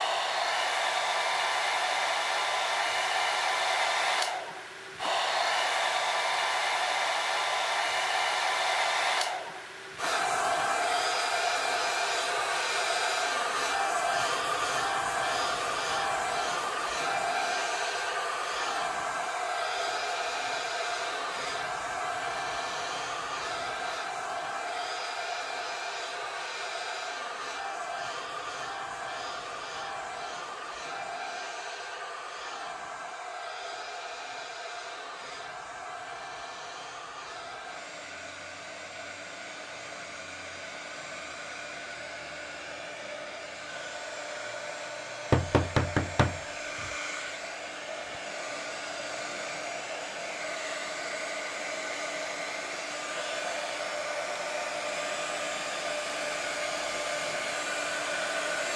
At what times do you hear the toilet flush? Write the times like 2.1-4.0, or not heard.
not heard.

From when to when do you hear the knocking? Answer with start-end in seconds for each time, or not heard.
45.3-46.9.